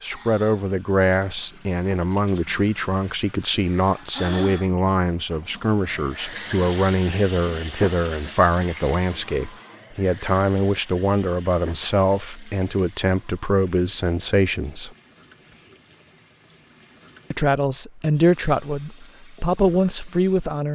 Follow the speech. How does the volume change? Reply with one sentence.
The loudness of the speech stays about the same.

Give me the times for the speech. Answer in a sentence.
The speech can be heard from 0.0 to 14.9 s and from 17.3 to 20.7 s.